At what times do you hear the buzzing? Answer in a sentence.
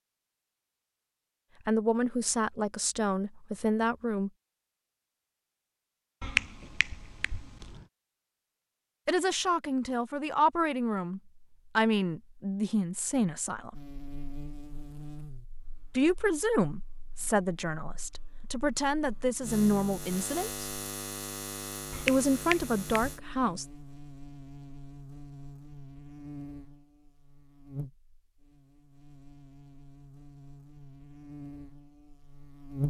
You can hear the buzzing from 13.7 to 32.8 s.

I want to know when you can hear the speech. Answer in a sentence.
You can hear the speech from 1.6 to 4.3 s, from 9.1 to 13.8 s, from 15.9 to 20.6 s and from 22.1 to 23.6 s.